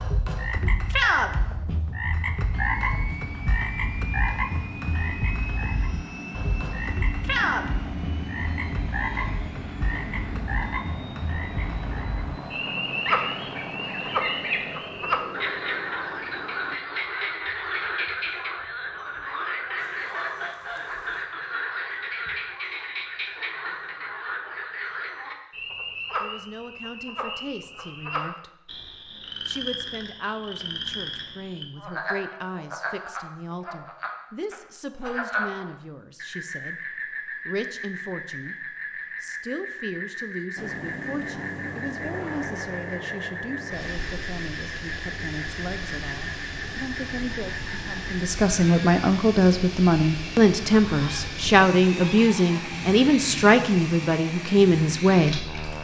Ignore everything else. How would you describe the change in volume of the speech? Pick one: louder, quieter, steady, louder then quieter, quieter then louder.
louder.